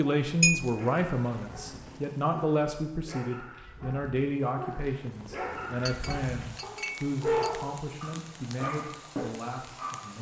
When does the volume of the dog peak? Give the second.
7 s.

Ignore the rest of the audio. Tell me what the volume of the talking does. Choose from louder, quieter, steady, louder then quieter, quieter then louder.
quieter.